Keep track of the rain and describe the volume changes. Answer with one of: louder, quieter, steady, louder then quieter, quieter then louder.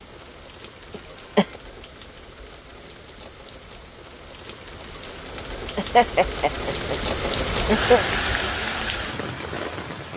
louder.